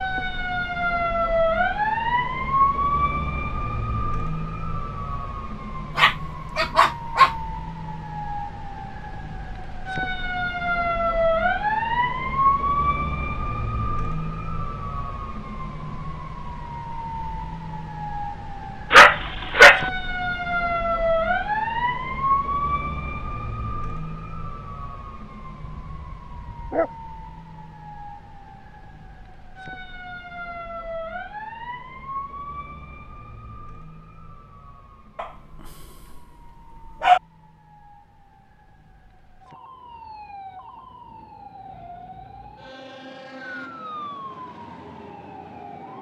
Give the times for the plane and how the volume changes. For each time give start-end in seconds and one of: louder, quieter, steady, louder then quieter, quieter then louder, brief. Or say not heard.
not heard.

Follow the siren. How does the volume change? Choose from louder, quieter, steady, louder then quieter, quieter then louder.
quieter.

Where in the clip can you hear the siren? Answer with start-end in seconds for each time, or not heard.
0.0-45.9.